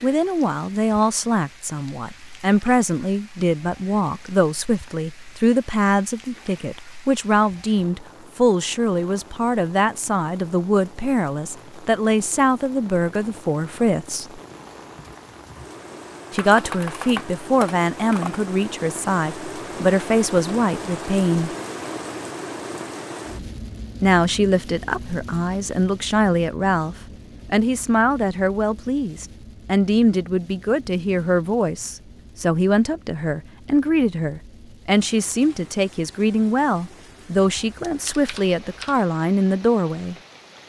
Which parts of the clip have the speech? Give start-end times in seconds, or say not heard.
0.0-14.4, 16.3-21.6, 24.0-40.1.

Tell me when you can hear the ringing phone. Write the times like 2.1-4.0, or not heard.
not heard.